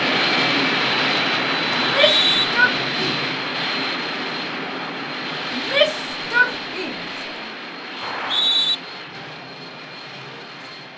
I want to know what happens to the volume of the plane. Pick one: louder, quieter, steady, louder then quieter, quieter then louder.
quieter.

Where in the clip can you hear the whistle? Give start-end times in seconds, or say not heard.
1.7-2.5, 8.0-8.8.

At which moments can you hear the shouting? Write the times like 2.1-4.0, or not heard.
1.8-3.1, 5.5-7.0.